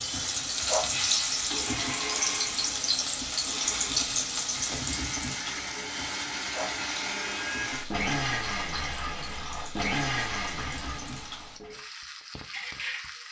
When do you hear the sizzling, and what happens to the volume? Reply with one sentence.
You can hear the sizzling from 0.0 to 13.2 s, getting quieter.